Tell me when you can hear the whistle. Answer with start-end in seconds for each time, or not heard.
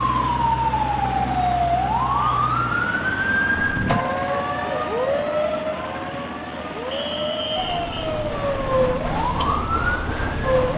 6.9-8.0.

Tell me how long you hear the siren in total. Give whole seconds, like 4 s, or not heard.
11 s.